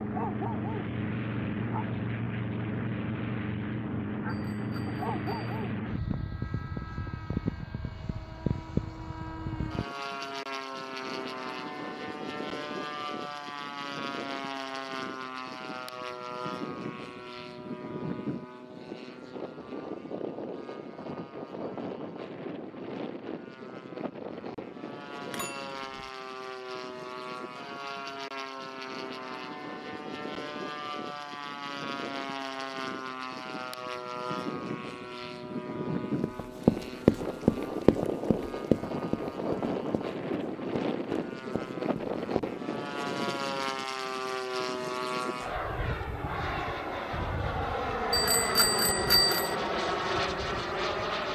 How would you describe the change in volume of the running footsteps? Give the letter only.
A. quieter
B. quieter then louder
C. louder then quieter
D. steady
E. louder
B.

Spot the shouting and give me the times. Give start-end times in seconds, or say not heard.
not heard.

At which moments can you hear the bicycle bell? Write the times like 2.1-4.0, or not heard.
4.2-5.5, 25.2-26.1, 48.1-49.5.